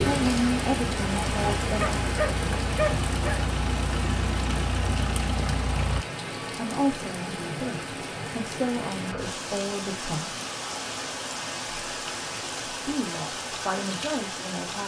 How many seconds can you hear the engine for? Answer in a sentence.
You can hear the engine for 6 seconds altogether.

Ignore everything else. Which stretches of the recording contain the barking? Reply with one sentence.
The barking can be heard from 1.8 to 3.4 s.